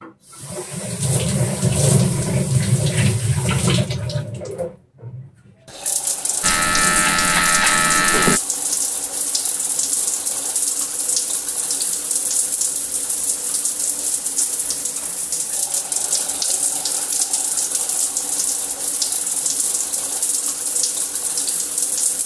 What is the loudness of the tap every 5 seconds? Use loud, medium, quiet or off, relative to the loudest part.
loud, medium, medium, medium, medium.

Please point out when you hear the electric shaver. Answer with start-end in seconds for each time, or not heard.
6.4-8.4.